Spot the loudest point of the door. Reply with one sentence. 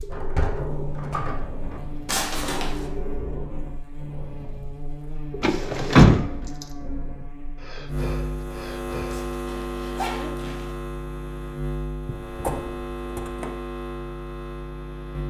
The volume of the door peaks at 6 seconds.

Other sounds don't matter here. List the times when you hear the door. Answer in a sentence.
The door can be heard from 0.1 to 1.8 s, from 5.4 to 6.7 s and from 12.1 to 13.5 s.